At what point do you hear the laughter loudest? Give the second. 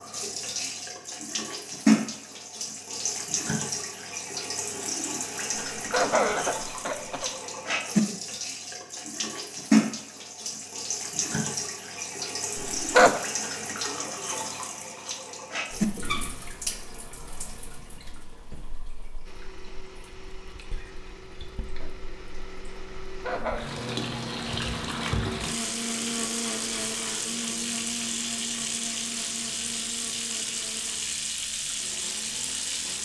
13 s.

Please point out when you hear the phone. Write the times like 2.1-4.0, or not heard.
not heard.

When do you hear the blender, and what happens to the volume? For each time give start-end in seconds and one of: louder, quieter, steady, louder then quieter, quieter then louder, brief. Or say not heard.
19.2-33.0 louder then quieter.